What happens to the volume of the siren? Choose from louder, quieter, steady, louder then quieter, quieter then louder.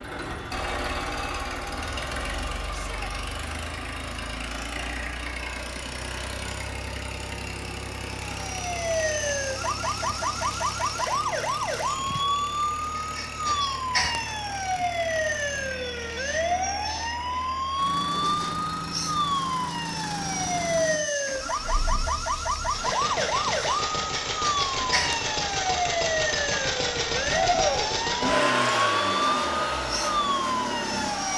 steady.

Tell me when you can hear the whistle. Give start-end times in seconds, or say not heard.
not heard.